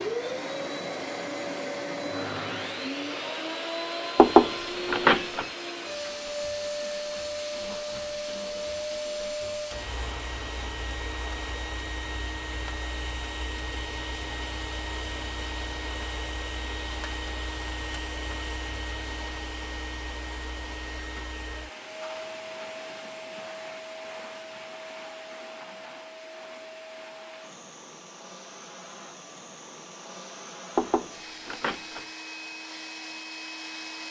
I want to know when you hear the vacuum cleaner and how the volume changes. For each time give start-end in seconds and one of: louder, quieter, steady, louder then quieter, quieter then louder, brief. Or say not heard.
0.0-34.0 quieter.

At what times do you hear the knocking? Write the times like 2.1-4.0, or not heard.
4.2-5.5, 30.8-32.0.